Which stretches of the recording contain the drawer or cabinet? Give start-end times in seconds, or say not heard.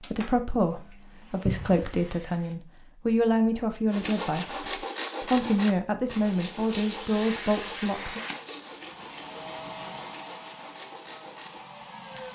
1.4-1.9.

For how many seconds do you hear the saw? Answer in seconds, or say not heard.
8 s.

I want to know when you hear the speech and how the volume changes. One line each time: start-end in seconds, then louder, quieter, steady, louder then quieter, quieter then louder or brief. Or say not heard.
0.0-8.2 steady.